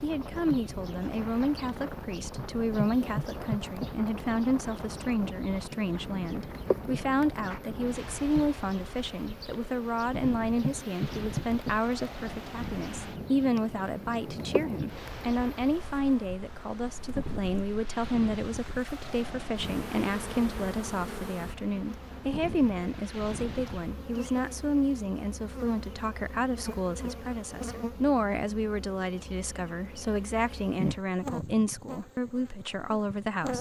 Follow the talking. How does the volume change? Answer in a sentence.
The loudness of the talking stays about the same.